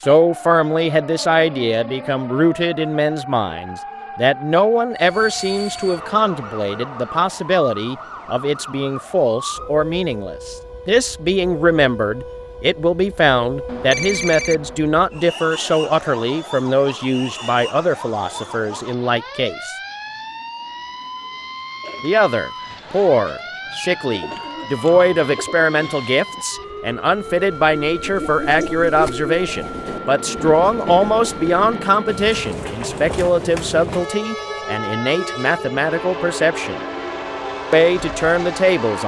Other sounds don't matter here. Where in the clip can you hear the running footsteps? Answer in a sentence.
The running footsteps can't be heard in this clip.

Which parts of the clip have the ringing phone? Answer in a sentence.
You can hear the ringing phone from 13.7 to 14.8 s.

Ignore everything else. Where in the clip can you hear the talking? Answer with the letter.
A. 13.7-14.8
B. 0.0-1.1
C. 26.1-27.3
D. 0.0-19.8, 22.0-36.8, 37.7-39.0
D.